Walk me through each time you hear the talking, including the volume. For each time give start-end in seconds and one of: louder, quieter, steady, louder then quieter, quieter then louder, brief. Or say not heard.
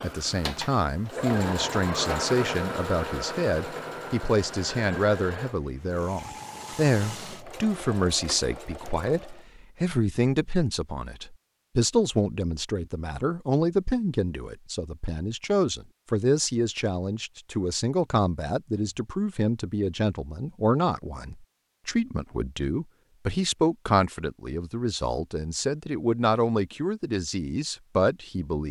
0.0-28.6 steady.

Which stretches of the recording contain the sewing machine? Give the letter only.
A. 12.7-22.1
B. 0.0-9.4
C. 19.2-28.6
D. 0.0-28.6
B.